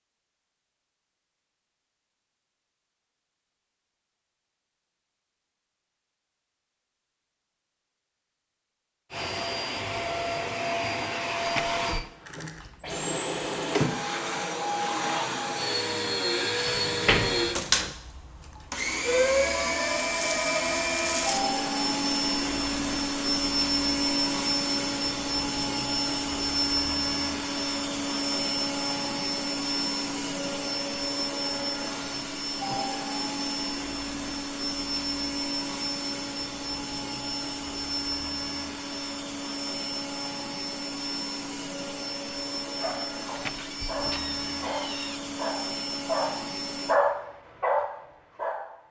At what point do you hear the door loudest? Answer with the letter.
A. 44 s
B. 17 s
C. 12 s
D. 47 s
B.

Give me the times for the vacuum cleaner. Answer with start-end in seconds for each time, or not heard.
9.1-47.0.